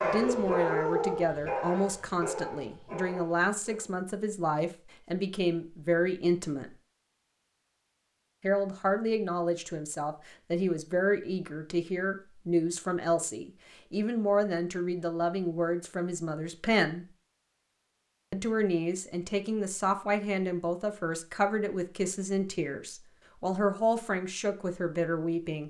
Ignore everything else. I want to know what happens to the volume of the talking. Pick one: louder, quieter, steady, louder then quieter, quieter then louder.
steady.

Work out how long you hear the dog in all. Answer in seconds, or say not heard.
4 s.